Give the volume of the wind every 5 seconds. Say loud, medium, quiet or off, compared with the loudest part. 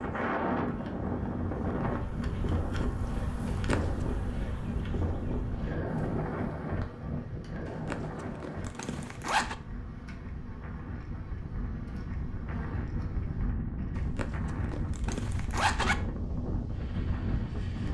loud, loud, medium, loud.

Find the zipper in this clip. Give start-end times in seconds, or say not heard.
3.5-4.0, 7.7-9.6, 13.9-15.9.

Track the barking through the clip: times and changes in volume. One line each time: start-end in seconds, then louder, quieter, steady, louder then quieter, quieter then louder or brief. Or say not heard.
not heard.